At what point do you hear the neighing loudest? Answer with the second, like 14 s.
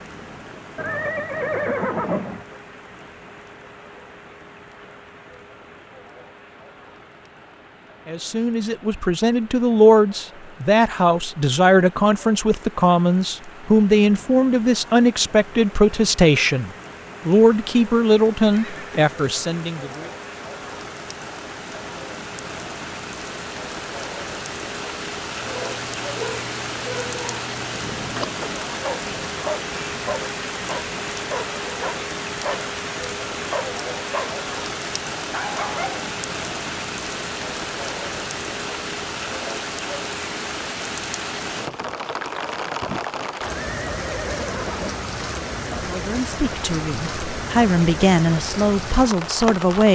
2 s.